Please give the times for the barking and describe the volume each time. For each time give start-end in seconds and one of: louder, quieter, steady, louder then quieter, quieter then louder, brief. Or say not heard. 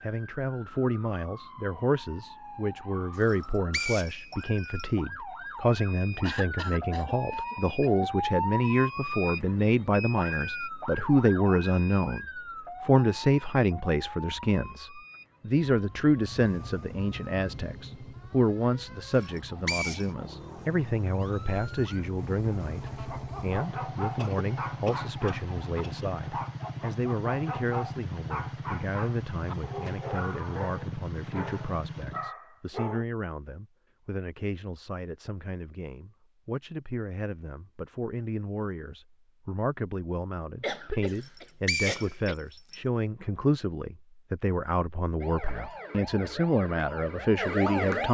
23.1-33.0 steady.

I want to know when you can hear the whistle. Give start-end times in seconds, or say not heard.
3.2-4.8, 19.1-20.1, 41.1-42.8.